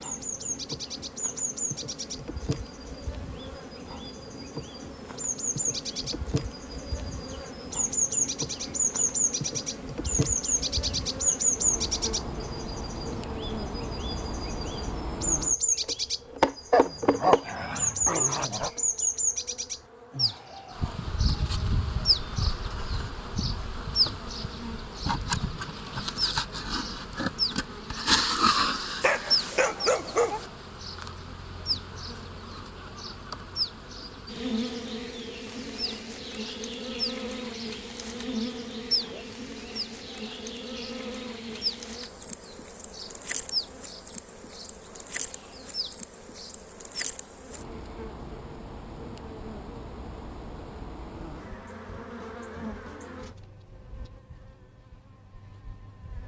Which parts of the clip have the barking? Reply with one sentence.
The barking can be heard from 16.7 to 18.7 s and from 29.0 to 30.4 s.